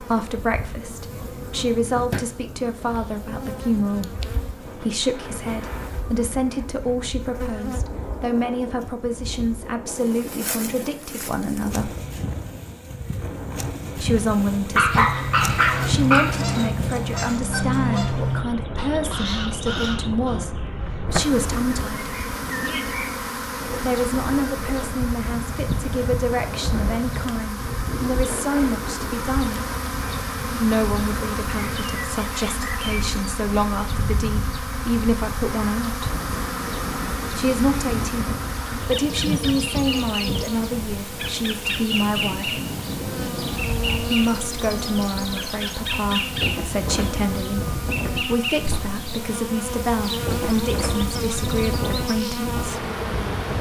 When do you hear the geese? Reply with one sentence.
The geese can be heard from 15.0 to 20.4 s.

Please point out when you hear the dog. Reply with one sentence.
The dog can be heard from 14.8 to 16.7 s.